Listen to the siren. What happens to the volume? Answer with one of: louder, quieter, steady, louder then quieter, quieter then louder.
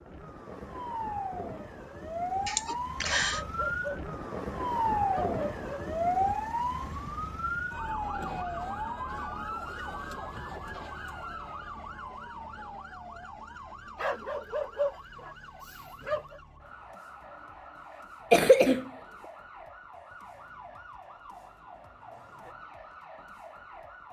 quieter.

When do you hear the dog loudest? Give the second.
15 s.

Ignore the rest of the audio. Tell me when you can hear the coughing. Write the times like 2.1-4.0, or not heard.
2.5-3.4, 18.3-18.9.